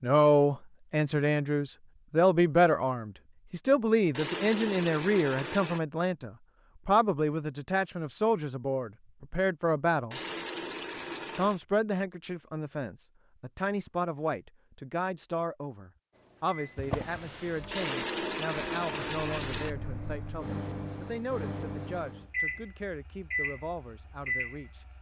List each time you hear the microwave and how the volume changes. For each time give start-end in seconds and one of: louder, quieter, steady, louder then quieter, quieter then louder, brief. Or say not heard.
16.1-24.9 louder.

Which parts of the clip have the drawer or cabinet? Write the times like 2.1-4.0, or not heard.
16.8-17.8.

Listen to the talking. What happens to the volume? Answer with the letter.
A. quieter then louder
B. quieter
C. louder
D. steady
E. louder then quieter
B.